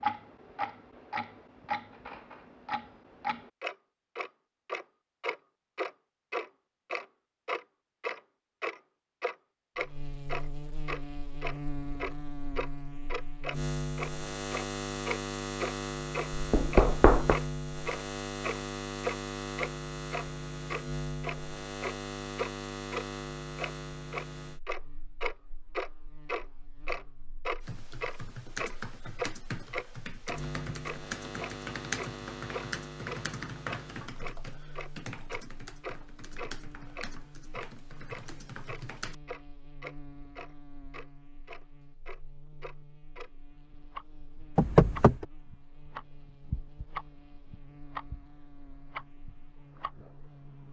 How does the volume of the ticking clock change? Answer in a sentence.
The volume of the ticking clock goes down.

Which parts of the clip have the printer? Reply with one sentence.
The printer can't be heard in this clip.